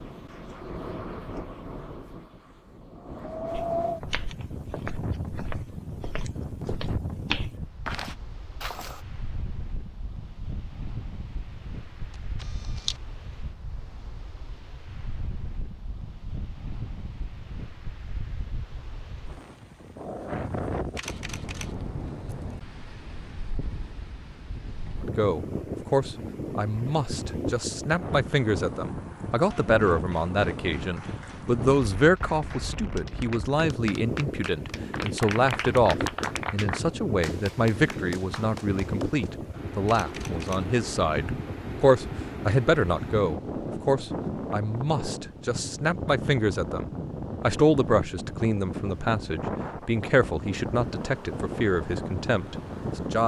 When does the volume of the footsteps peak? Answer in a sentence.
The volume of the footsteps peaks at 7 seconds.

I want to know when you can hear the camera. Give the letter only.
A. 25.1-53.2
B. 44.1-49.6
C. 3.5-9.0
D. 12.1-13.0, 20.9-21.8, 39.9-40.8
D.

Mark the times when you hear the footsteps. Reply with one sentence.
You can hear the footsteps from 3.5 to 9.0 s.